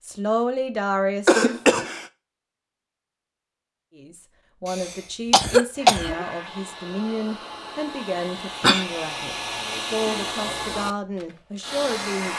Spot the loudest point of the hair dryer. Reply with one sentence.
The volume of the hair dryer peaks at 10 seconds.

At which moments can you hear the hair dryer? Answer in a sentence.
The hair dryer can be heard from 5.7 to 12.3 s.